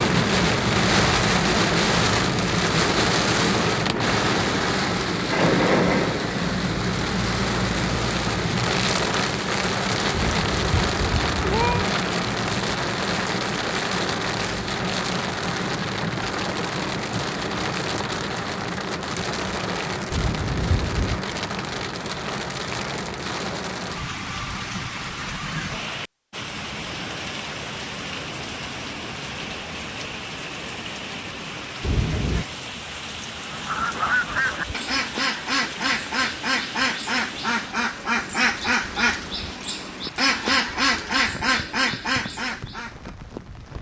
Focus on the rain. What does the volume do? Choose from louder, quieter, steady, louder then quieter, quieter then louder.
quieter.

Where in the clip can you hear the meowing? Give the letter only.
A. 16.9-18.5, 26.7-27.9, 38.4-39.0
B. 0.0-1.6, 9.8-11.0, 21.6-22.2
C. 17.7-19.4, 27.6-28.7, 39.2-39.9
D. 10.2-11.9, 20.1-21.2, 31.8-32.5
D.